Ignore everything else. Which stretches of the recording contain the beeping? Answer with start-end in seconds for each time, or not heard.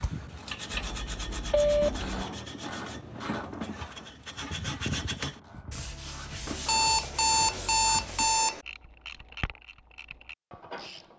0.7-2.1, 6.7-8.7.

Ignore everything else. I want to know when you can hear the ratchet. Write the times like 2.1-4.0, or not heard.
0.0-11.1.